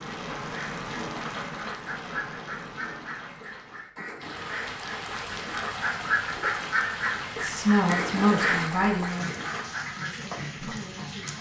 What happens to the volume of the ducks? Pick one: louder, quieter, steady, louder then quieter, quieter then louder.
louder.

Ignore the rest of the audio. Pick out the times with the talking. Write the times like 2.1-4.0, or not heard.
7.4-11.3.